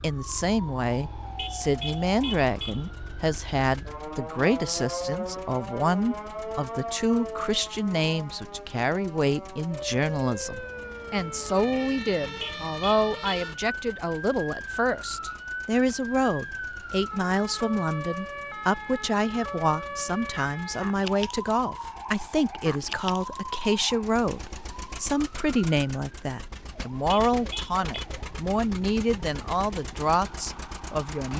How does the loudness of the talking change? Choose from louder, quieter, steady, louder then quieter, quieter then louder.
steady.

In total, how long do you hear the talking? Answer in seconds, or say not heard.
31 s.